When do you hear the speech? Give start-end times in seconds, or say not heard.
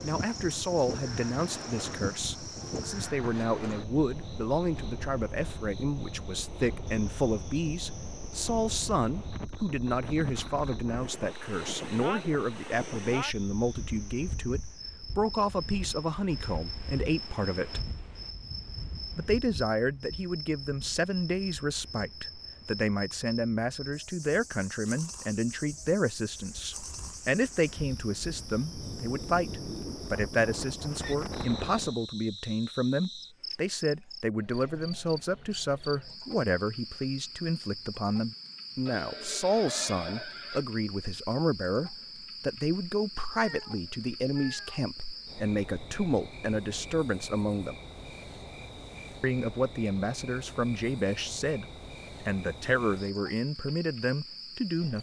0.0-17.8, 19.1-47.8, 49.2-54.9.